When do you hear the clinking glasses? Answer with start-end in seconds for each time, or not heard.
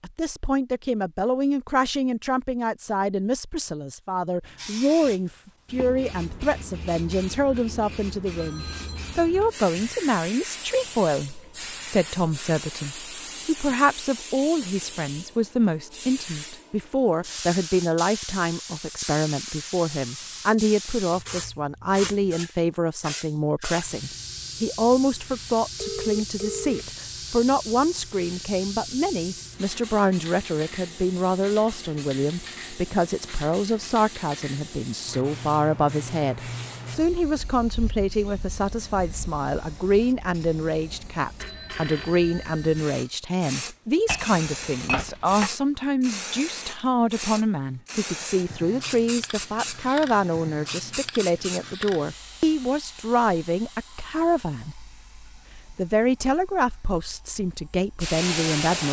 44.0-45.5.